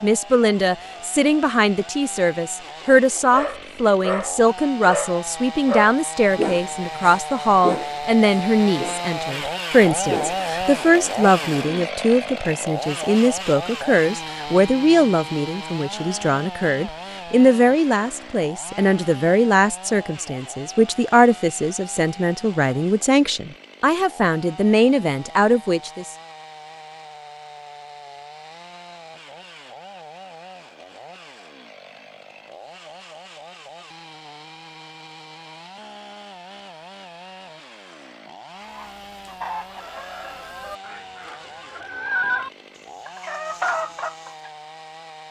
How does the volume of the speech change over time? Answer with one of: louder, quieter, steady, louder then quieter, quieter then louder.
steady.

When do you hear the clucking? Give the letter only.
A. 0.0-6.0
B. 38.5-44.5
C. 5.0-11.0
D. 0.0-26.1
B.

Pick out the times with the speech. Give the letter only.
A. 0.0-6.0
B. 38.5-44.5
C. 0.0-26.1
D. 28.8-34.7
C.